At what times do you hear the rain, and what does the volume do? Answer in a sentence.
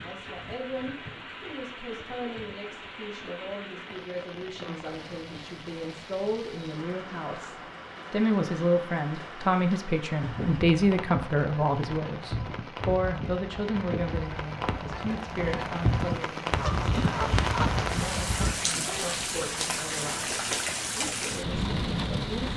You can hear the rain from 0.0 to 22.5 s, getting louder.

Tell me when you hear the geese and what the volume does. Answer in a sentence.
The geese can be heard from 10.2 to 18.7 s, getting louder.